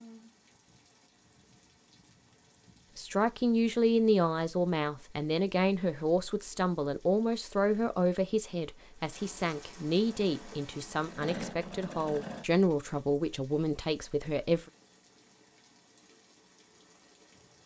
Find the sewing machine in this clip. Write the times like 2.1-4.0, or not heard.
10.0-12.4.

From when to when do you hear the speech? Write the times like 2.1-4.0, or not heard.
3.0-14.7.